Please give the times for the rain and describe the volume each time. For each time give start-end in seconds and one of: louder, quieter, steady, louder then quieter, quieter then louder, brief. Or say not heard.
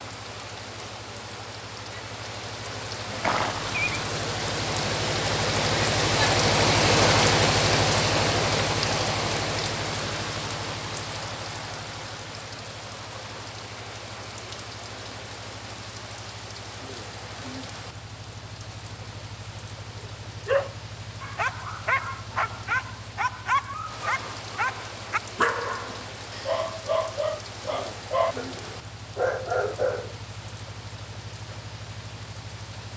0.0-32.9 quieter.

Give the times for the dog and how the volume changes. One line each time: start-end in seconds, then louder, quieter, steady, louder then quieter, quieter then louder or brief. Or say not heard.
20.0-30.1 steady.